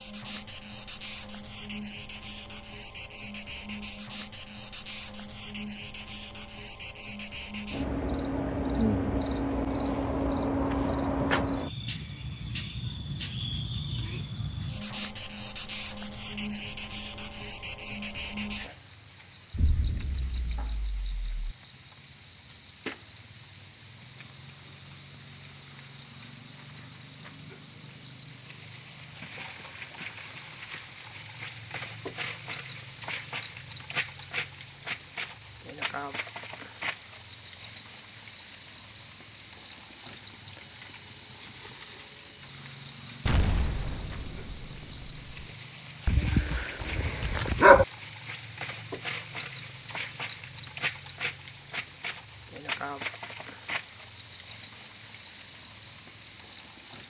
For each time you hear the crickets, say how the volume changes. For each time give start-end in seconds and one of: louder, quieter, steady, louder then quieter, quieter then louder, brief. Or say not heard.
0.0-57.0 louder.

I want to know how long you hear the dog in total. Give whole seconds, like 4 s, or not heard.
2 s.